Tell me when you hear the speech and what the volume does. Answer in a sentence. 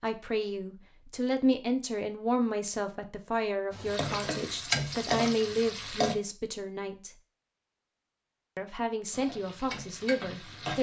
You can hear the speech from 0.0 to 7.1 s, at a steady volume; and briefly from 8.6 to 10.7 s.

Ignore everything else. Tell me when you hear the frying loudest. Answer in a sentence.
The volume of the frying peaks at 5 seconds.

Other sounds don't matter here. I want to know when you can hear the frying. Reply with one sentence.
You can hear the frying from 3.7 to 6.2 s and from 9.1 to 10.7 s.